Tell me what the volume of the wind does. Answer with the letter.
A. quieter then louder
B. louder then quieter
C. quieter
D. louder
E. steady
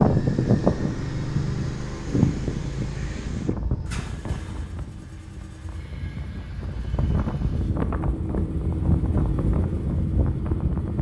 A.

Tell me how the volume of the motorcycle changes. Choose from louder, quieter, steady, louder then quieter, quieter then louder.
quieter then louder.